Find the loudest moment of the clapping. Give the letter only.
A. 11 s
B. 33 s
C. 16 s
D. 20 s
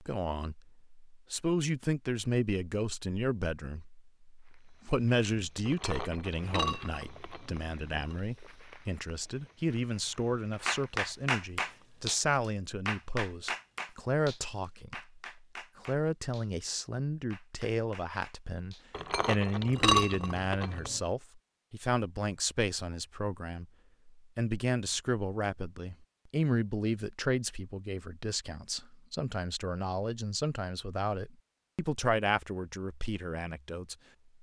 A.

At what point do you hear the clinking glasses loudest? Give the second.
20 s.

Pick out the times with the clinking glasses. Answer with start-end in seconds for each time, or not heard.
5.7-8.1, 18.9-21.0.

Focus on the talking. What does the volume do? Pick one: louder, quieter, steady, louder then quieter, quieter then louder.
steady.